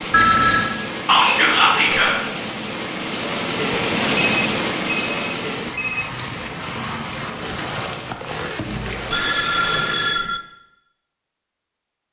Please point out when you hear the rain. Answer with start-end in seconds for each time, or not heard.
0.0-10.3.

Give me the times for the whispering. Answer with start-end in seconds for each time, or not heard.
1.1-2.1.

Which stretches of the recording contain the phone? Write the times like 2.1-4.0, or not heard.
0.1-0.8, 4.1-6.0, 9.1-10.4.